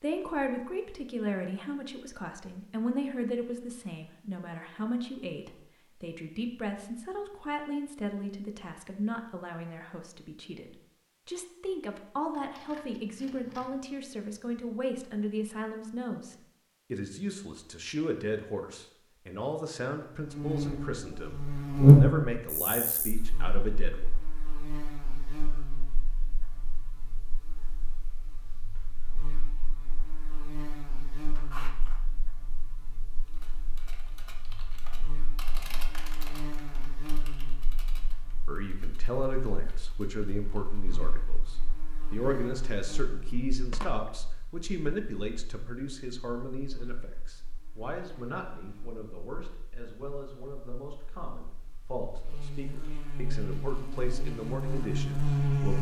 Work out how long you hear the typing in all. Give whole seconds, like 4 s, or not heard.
8 s.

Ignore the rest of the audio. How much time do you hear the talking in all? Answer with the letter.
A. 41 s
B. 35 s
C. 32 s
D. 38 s
A.